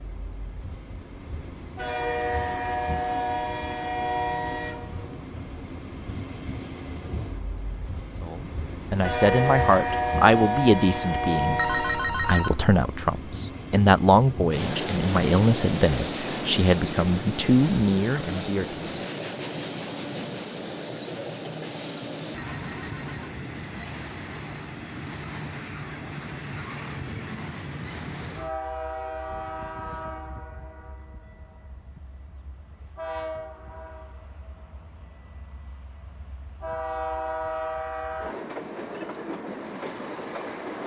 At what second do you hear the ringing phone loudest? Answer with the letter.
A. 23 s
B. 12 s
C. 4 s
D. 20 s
B.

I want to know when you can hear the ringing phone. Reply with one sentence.
You can hear the ringing phone from 11.6 to 12.6 s and from 22.4 to 23.4 s.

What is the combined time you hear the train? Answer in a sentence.
The train can be heard for 41 seconds in total.